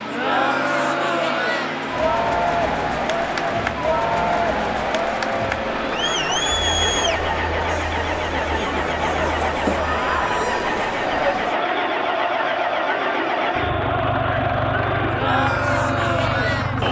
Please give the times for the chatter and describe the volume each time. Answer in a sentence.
You can hear the chatter from 0.0 to 16.8 s, at a steady volume.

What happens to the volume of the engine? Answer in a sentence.
The loudness of the engine stays about the same.